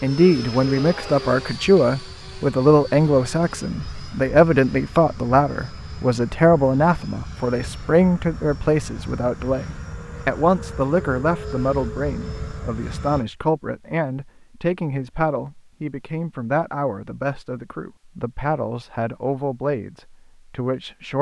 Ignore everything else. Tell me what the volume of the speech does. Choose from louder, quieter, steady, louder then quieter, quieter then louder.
quieter.